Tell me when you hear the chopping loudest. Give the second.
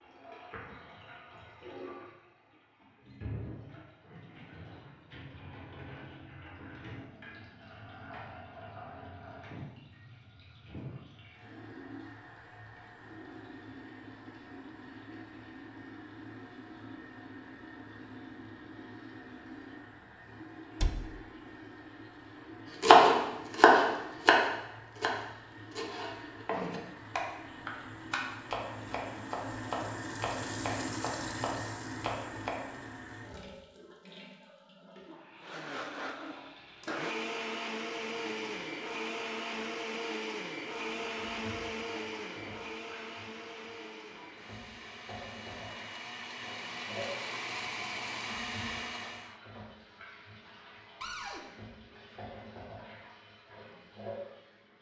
23 s.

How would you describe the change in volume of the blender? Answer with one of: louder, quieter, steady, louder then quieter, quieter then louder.
quieter then louder.